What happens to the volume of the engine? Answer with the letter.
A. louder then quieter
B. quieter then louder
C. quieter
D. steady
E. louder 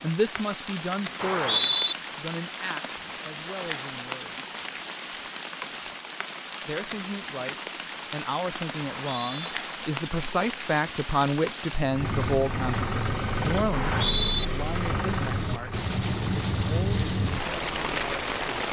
C.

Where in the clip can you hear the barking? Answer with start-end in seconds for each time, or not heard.
not heard.